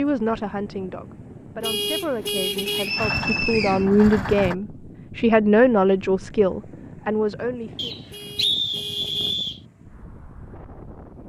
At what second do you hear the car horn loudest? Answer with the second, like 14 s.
2 s.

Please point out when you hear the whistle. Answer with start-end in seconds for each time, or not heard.
2.6-3.9, 7.8-9.6.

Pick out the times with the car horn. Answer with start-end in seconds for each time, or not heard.
1.6-3.0, 8.1-9.4.